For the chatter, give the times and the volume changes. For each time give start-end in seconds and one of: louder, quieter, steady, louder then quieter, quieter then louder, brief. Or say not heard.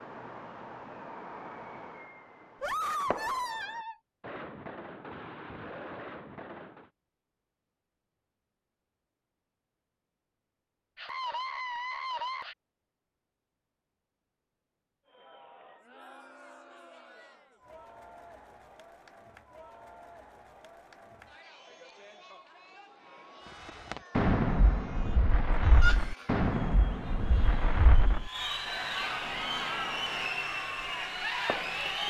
15.1-32.0 louder.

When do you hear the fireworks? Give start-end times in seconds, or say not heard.
0.0-6.9, 23.4-32.0.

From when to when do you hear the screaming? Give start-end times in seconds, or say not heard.
2.6-4.0, 10.9-12.6, 25.8-26.4.